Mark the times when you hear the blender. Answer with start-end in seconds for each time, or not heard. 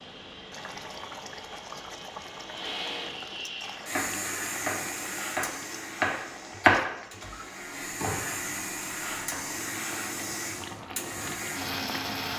0.0-12.3.